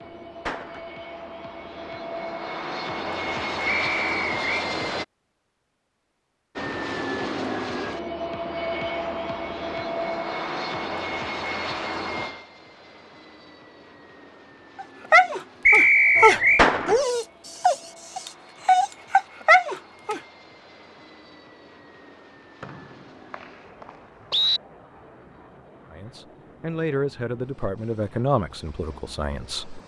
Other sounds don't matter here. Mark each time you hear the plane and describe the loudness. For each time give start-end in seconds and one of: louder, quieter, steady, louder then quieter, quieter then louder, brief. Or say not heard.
0.0-5.0 louder
6.5-29.8 quieter.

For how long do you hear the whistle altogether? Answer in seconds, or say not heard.
4 s.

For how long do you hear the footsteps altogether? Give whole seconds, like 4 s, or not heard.
not heard.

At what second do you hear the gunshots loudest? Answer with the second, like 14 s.
17 s.